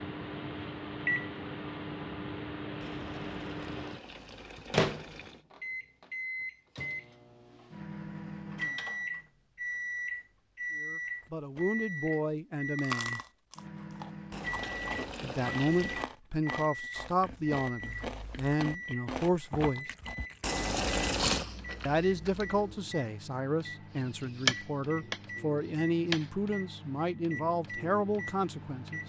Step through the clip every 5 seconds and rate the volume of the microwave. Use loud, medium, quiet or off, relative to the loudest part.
loud, loud, loud, medium, medium, medium.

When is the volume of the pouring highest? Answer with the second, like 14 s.
21 s.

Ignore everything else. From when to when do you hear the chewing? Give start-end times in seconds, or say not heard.
11.2-11.8, 12.8-22.8.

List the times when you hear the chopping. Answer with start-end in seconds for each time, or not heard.
24.4-26.2.